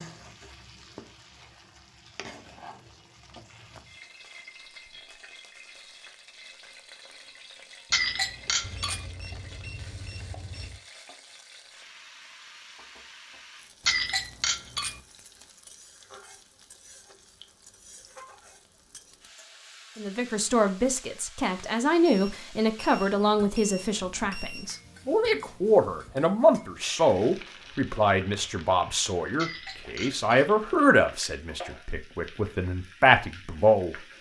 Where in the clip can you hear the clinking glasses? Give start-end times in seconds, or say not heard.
7.9-9.1, 13.8-15.0, 29.4-30.6.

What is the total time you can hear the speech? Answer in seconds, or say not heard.
14 s.